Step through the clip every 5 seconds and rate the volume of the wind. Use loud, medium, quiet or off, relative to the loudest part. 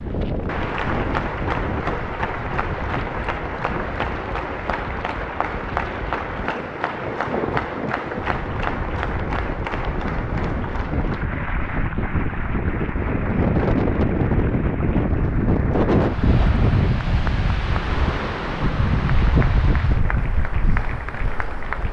medium, medium, loud, loud, medium.